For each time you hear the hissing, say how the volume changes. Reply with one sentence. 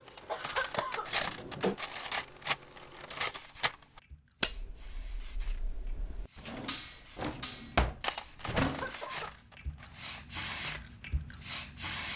The hissing can be heard from 0.0 to 12.1 s, getting louder.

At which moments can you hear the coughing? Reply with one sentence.
The coughing can be heard from 0.2 to 1.1 s and from 8.6 to 9.3 s.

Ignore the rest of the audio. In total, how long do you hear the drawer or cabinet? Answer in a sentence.
The drawer or cabinet can be heard for 4 seconds in total.